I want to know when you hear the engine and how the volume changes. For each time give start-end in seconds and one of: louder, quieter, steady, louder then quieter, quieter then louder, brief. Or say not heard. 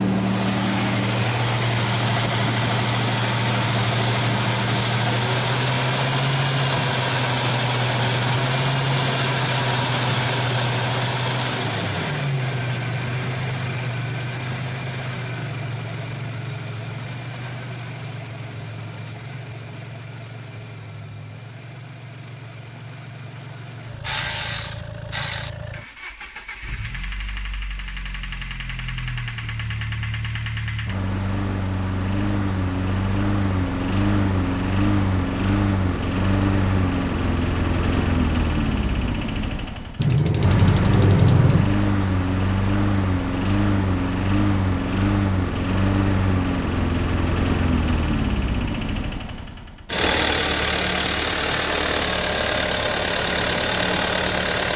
0.0-54.7 quieter then louder.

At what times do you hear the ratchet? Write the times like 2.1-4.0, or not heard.
24.0-25.5, 40.0-41.8.